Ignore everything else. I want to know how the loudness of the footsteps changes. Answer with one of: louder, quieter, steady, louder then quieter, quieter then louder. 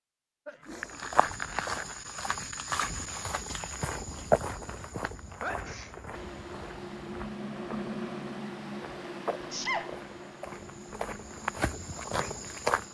quieter then louder.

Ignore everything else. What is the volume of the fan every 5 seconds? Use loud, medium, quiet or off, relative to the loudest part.
off, loud, medium.